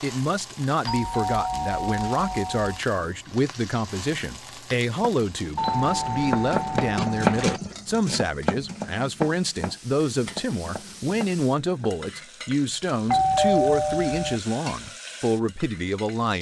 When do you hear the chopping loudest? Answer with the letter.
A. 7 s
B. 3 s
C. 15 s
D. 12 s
A.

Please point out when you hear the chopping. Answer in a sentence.
You can hear the chopping from 4.8 to 12.2 s.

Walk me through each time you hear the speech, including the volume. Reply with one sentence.
You can hear the speech from 0.0 to 16.3 s, at a steady volume.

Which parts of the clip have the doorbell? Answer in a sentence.
The doorbell can be heard from 0.8 to 2.8 s, from 5.5 to 7.6 s and from 13.1 to 14.4 s.